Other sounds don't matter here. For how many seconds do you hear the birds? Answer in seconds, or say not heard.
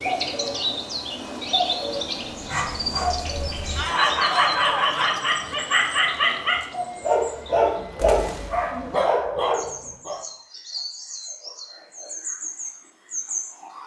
14 s.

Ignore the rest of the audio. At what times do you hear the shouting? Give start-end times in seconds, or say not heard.
3.8-5.2.